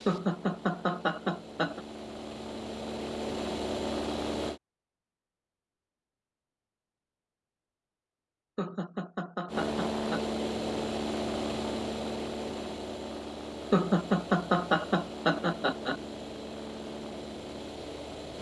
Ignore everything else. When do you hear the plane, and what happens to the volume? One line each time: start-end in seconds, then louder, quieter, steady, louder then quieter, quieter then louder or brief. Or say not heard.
0.0-4.6 louder
9.4-18.3 quieter.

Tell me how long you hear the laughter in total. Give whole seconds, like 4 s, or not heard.
6 s.